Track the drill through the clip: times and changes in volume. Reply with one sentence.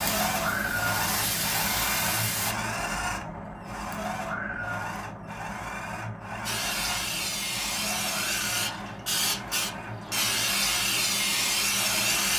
You can hear the drill from 0.0 to 12.3 s, getting quieter.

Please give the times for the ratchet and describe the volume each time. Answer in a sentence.
The ratchet can't be heard in this clip.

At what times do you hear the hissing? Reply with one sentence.
You can hear the hissing from 0.0 to 2.5 s and from 6.5 to 12.3 s.